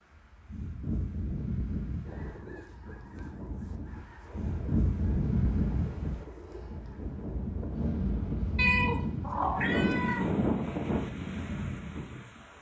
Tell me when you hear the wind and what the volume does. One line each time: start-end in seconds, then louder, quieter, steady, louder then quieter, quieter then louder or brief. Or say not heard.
0.1-12.5 louder.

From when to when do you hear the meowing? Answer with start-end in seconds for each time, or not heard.
8.6-10.4.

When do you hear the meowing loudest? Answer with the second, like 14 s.
9 s.